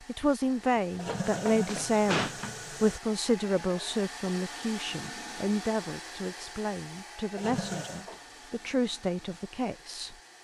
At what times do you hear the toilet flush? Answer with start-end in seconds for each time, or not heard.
0.9-3.0, 7.3-8.1.